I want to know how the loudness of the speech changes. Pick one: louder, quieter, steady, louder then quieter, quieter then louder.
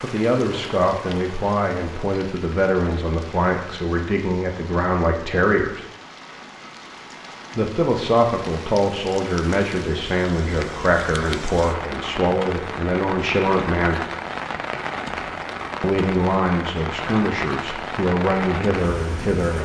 steady.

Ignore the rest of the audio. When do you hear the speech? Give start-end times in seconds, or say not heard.
0.0-5.8, 7.5-14.1, 15.8-19.6.